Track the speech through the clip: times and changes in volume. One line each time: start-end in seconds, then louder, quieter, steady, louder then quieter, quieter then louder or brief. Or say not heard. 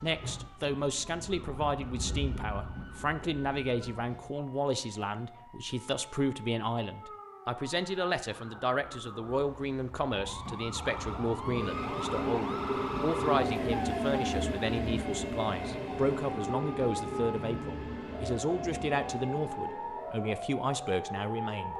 0.0-21.7 steady.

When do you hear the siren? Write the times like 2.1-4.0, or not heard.
0.0-21.7.